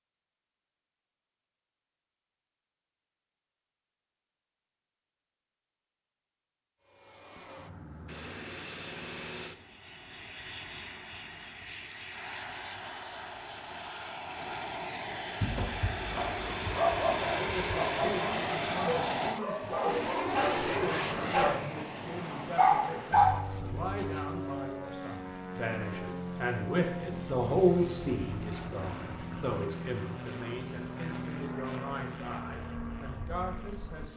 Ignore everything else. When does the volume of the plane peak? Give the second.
19 s.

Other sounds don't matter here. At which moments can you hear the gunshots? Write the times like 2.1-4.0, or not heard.
not heard.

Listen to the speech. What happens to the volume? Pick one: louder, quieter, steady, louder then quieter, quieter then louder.
louder then quieter.